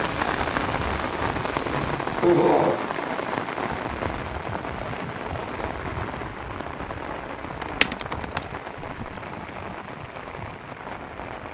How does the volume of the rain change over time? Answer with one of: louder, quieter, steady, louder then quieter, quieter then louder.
quieter.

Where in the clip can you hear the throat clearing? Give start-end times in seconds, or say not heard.
1.6-2.9.